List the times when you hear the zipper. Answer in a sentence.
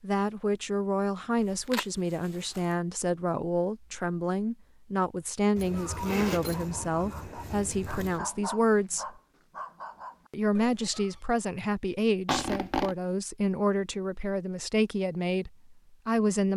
The zipper can be heard from 1.4 to 2.6 s, from 5.5 to 8.2 s and from 12.2 to 12.9 s.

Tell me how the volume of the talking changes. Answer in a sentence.
The volume of the talking stays about the same.